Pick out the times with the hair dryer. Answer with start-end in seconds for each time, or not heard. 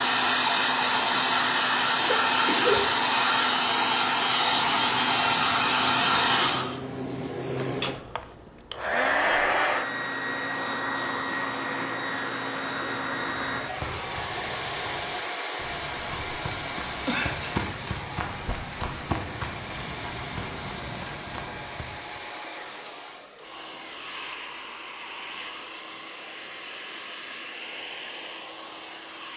0.0-29.3.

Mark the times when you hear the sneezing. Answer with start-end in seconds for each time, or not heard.
2.0-2.8, 17.1-17.6.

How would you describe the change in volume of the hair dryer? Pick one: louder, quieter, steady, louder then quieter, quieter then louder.
quieter.